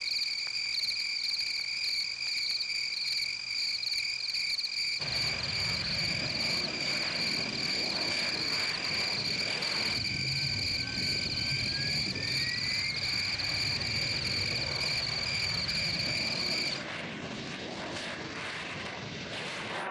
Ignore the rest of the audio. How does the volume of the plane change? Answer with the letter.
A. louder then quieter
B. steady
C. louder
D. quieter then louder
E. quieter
B.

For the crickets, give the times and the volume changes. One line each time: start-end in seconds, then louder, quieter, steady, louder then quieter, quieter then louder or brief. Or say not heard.
0.0-16.9 steady.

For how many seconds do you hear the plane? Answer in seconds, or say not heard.
15 s.